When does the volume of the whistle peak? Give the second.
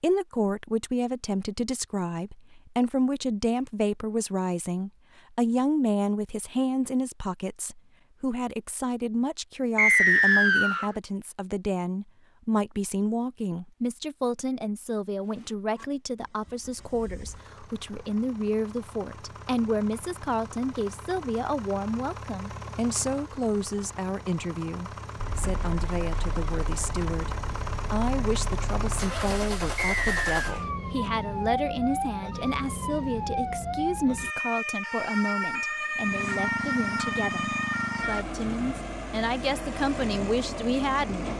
10 s.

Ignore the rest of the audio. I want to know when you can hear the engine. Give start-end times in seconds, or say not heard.
15.2-30.7, 36.0-41.3.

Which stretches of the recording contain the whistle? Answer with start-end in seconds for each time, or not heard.
9.8-10.9, 29.8-30.6.